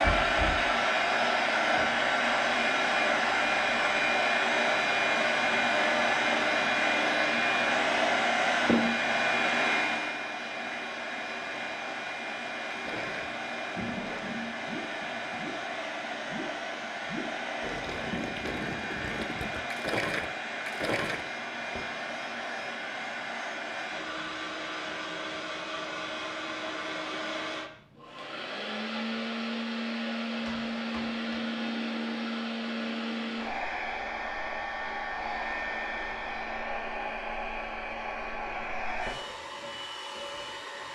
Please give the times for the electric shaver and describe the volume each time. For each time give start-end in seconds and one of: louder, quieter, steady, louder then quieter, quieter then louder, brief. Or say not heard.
not heard.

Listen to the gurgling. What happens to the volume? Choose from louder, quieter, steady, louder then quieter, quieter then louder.
louder.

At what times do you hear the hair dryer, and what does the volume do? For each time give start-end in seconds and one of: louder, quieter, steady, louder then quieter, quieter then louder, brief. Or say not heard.
0.0-40.9 quieter.